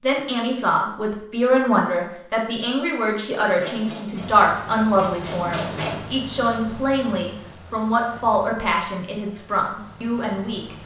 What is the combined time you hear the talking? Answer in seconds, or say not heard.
11 s.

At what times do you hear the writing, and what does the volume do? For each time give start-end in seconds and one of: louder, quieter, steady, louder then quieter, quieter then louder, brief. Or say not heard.
not heard.